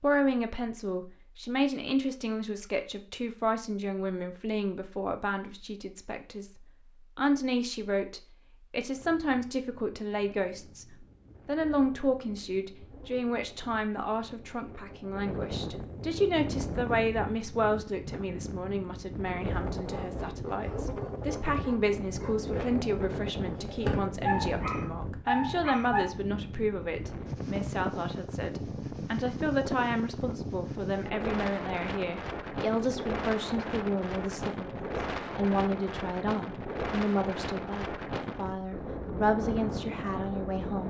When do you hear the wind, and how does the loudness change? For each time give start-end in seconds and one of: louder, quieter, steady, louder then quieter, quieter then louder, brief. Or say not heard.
8.9-40.8 louder.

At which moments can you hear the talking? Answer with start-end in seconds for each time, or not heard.
0.0-40.8.